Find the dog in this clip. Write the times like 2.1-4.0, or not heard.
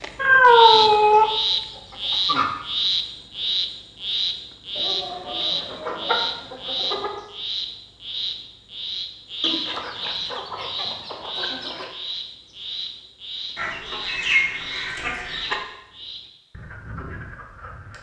not heard.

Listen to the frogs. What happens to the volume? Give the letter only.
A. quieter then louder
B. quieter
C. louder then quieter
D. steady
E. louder
B.